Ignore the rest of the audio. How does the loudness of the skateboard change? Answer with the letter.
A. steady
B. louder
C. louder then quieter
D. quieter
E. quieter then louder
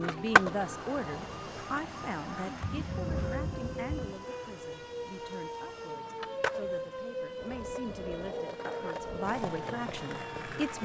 E.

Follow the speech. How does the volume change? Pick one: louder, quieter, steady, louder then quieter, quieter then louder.
quieter then louder.